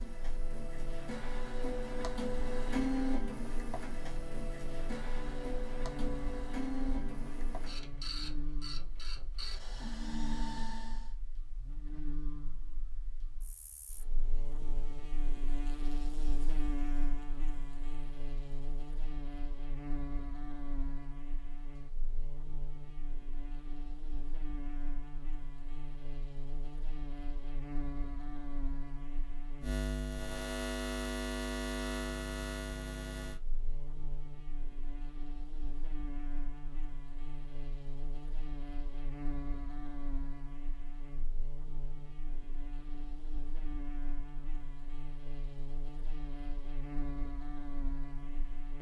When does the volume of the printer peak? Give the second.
3 s.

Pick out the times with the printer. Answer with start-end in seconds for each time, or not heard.
0.0-11.1.